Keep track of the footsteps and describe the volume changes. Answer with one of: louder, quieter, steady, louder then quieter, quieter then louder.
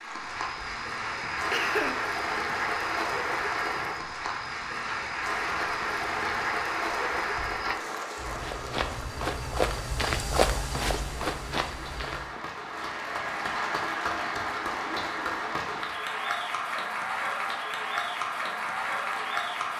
louder.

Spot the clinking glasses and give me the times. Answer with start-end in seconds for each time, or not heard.
not heard.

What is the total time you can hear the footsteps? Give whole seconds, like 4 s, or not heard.
12 s.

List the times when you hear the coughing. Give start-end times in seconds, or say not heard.
1.5-2.1.